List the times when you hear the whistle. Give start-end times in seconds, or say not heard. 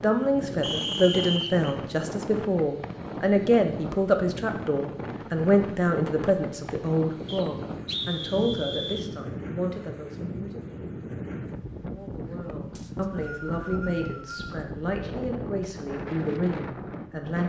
0.6-1.8, 7.2-9.1, 12.8-14.5.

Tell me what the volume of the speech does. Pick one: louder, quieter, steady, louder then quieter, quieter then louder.
quieter.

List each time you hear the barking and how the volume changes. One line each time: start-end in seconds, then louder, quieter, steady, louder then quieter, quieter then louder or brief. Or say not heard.
not heard.